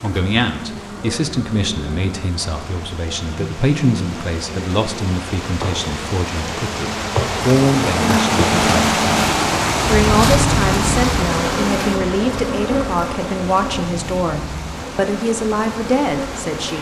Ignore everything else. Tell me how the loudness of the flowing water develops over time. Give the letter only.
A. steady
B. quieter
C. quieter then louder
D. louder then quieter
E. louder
D.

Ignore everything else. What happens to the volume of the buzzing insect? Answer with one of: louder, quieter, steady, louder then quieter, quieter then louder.
louder then quieter.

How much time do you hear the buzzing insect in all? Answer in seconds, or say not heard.
17 s.